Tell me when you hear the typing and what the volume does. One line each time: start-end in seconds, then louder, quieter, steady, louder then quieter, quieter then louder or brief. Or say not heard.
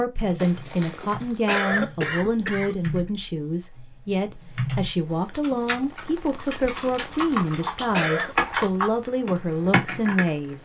0.1-10.3 louder.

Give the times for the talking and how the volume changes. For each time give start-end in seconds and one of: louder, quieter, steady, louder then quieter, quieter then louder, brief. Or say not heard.
0.0-10.6 steady.